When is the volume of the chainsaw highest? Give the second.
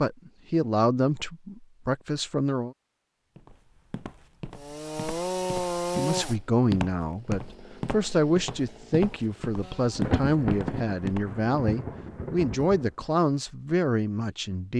6 s.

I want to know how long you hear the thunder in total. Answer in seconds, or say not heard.
3 s.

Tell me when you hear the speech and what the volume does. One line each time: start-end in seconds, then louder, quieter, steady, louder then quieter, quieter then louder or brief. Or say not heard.
0.0-2.8 brief
6.0-14.7 steady.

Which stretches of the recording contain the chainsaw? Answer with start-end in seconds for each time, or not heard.
4.5-10.2.